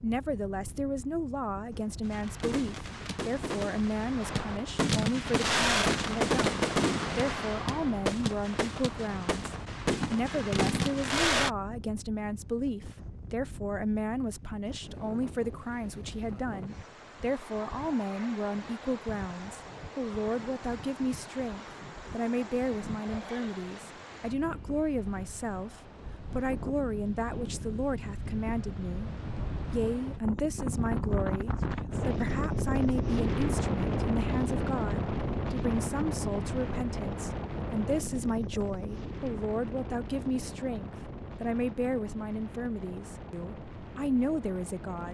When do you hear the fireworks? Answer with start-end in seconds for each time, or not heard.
2.0-11.5.